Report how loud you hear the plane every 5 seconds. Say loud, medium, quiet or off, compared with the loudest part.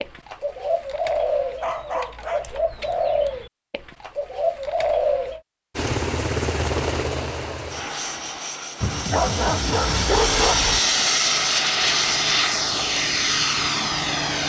off, medium, loud.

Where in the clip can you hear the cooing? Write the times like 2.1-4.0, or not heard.
0.0-5.4.